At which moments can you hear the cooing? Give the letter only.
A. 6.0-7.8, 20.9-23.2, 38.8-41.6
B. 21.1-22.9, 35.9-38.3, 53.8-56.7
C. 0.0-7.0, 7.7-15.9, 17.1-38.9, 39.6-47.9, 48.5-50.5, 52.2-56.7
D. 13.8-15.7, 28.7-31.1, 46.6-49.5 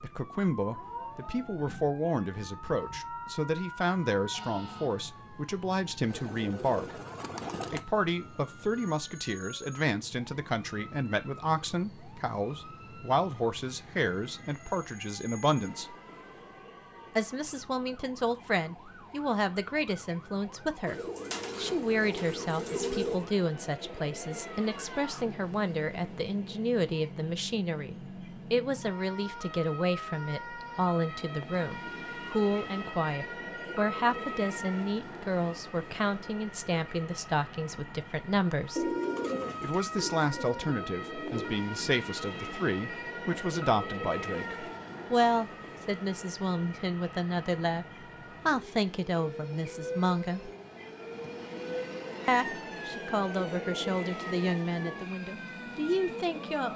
A.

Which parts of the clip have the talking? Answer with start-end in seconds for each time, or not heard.
0.0-7.0, 7.7-15.9, 17.1-38.9, 39.6-47.9, 48.5-50.5, 52.2-56.7.